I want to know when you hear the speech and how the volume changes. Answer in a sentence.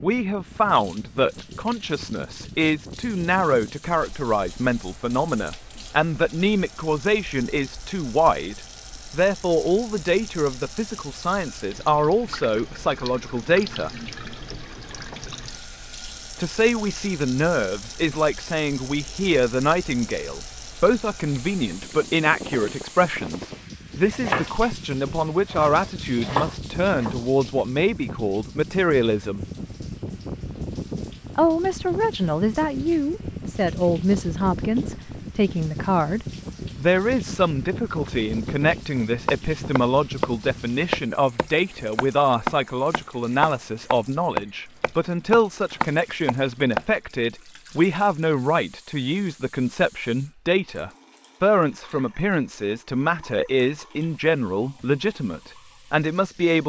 The speech can be heard from 0.0 to 13.9 s, at a steady volume; from 16.4 to 29.4 s, at a steady volume; and from 31.4 to 56.6 s, at a steady volume.